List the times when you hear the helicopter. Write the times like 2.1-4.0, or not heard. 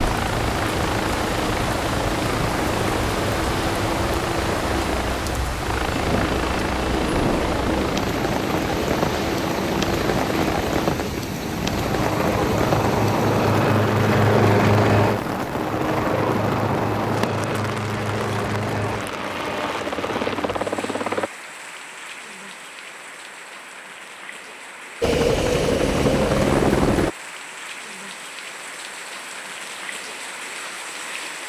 0.0-21.3, 25.0-27.1.